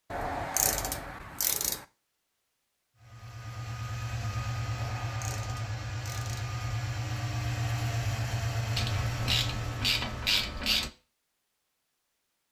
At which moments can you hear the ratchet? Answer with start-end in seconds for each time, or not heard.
0.1-1.9, 4.8-6.5, 8.8-10.9.